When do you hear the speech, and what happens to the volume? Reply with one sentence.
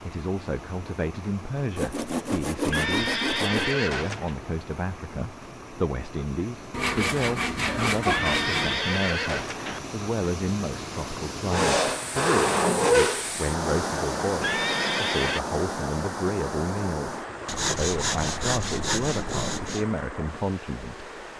The speech can be heard from 0.0 to 21.1 s, at a steady volume.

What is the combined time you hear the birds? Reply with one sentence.
The birds can't be heard in this clip.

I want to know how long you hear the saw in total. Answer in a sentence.
You can hear the saw for 8 seconds altogether.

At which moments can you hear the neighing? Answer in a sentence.
The neighing can be heard from 2.7 to 4.3 s, from 8.1 to 9.8 s and from 14.4 to 15.4 s.